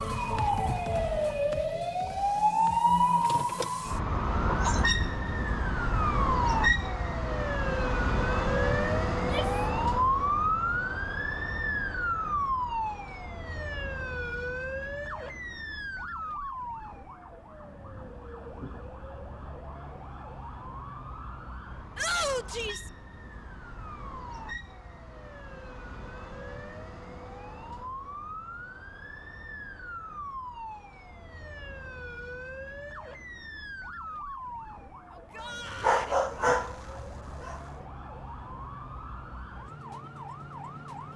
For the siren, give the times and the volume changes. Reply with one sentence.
The siren can be heard from 0.0 to 41.1 s, getting quieter.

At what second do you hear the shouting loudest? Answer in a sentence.
The loudest moment of the shouting is at 22 seconds.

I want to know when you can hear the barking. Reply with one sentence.
The barking can be heard from 35.8 to 37.6 s.